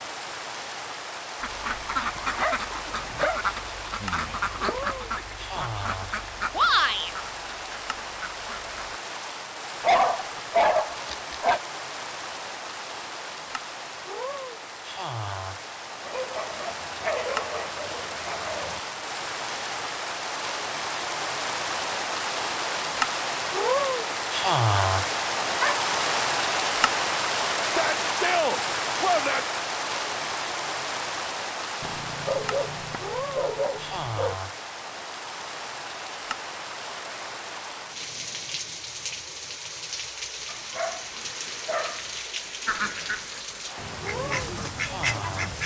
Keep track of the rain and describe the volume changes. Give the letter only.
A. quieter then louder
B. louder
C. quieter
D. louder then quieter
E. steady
D.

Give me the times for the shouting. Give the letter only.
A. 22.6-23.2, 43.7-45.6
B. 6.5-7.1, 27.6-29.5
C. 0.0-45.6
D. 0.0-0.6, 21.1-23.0
B.